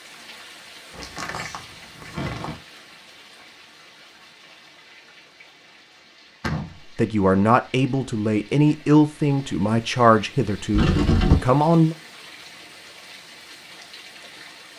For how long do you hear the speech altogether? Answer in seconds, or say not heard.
5 s.